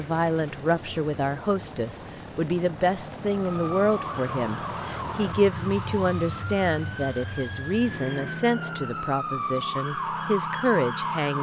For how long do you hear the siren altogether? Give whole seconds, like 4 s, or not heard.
8 s.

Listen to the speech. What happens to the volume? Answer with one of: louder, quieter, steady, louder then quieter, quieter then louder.
steady.